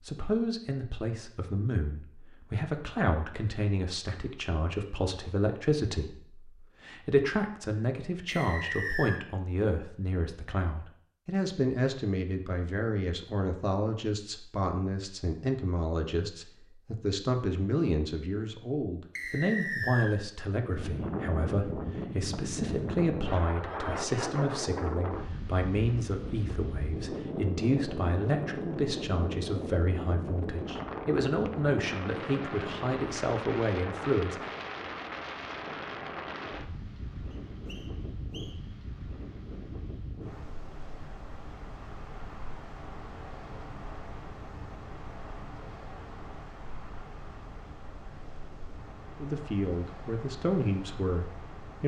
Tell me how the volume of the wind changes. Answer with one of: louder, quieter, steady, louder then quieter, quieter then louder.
quieter.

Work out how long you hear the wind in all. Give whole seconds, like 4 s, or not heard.
31 s.